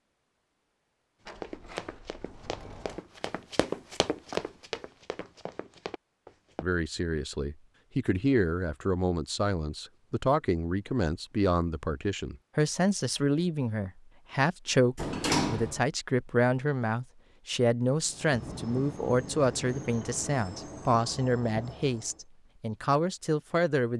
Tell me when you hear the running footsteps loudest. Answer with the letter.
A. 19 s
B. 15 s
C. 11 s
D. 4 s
D.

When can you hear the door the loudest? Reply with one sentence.
The volume of the door peaks at 15 seconds.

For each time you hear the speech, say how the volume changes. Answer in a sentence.
You can hear the speech from 6.6 to 23.9 s, at a steady volume.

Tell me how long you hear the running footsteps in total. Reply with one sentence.
The running footsteps can be heard for 5 seconds in total.